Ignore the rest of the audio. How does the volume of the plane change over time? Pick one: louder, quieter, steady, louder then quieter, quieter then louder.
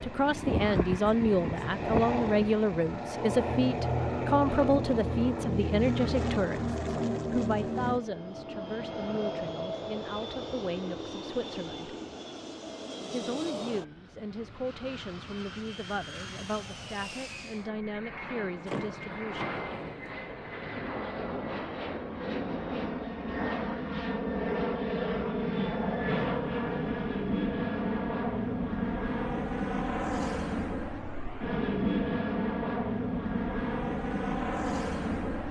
quieter then louder.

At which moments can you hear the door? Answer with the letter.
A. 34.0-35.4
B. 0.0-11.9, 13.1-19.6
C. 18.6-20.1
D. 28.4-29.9
C.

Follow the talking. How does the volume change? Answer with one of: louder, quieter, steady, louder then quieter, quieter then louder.
quieter.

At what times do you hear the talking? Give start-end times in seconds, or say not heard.
0.0-11.9, 13.1-19.6.